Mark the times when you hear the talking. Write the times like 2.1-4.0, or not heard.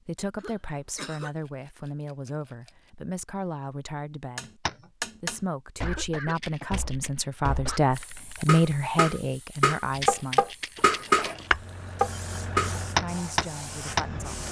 0.1-10.5, 13.0-14.4.